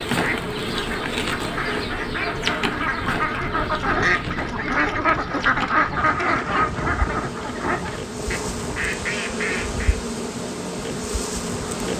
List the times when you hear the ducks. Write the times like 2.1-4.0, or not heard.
0.1-10.0.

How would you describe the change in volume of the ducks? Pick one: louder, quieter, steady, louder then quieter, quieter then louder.
louder then quieter.